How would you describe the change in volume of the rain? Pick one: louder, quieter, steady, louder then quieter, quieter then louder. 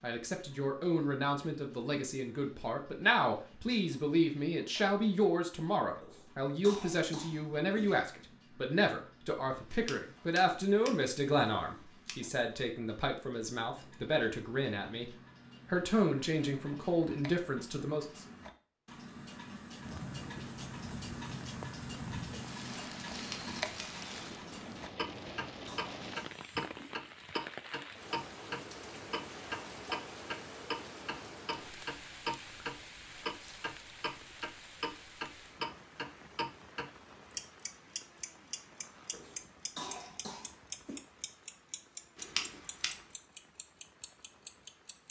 quieter.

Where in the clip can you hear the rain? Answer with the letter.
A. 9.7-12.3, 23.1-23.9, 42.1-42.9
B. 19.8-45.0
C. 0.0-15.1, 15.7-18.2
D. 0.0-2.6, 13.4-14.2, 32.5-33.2
B.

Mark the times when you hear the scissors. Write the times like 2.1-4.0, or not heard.
9.7-12.3, 23.1-23.9, 42.1-42.9.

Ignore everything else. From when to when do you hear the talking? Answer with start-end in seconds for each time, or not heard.
0.0-15.1, 15.7-18.2.